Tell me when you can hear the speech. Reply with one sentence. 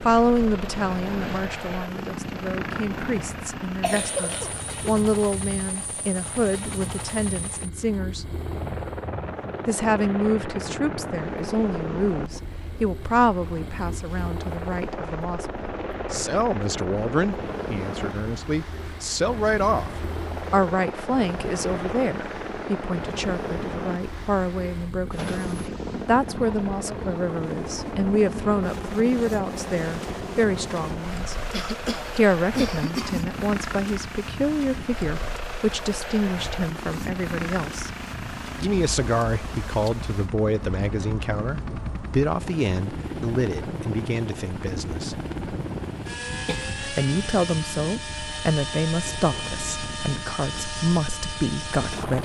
You can hear the speech from 0.0 to 8.2 s, from 9.7 to 19.9 s, from 20.5 to 31.4 s, from 32.1 to 37.9 s, from 38.6 to 45.2 s and from 46.8 to 52.2 s.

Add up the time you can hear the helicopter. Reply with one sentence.
The helicopter can be heard for 52 seconds in total.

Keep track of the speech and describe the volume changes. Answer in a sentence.
The volume of the speech stays about the same.